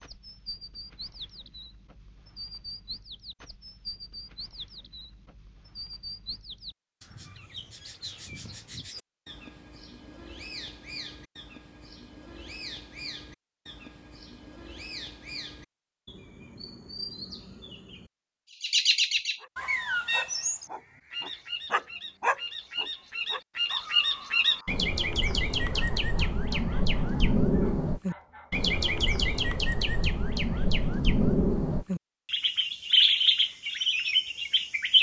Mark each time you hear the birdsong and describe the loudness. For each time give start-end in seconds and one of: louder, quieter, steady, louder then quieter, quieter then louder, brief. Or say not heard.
0.0-34.9 louder.